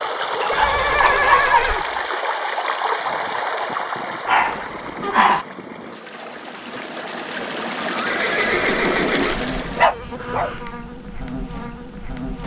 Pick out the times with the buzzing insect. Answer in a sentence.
The buzzing insect can be heard from 8.3 to 12.4 s.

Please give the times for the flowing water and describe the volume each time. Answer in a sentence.
You can hear the flowing water from 0.0 to 9.9 s, getting quieter then louder.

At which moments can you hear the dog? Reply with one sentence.
The dog can be heard from 0.4 to 1.8 s, from 4.2 to 5.5 s and from 9.8 to 10.6 s.